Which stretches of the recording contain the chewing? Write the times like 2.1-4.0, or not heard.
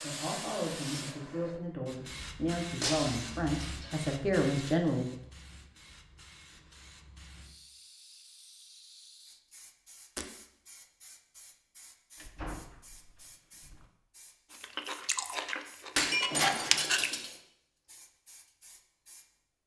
14.6-17.1.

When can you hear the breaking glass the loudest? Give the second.
16 s.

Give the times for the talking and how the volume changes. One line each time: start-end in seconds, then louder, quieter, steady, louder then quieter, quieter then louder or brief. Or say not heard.
0.0-5.2 louder.